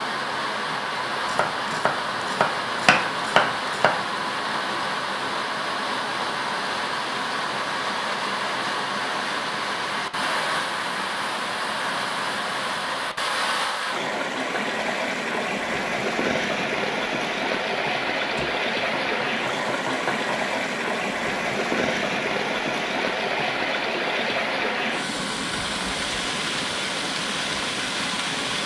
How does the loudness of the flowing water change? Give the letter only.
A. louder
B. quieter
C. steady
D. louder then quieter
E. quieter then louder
C.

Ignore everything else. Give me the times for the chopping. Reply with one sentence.
The chopping can be heard from 1.2 to 4.0 s and from 18.1 to 20.8 s.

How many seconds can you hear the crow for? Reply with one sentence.
You can't hear the crow here.